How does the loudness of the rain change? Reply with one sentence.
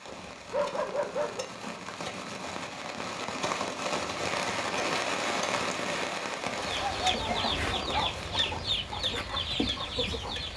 The loudness of the rain goes up, then down.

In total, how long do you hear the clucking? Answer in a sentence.
You can hear the clucking for 4 seconds altogether.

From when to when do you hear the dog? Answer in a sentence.
The dog can be heard from 0.3 to 1.4 s and from 6.8 to 8.5 s.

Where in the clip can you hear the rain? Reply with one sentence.
You can hear the rain from 0.0 to 10.5 s.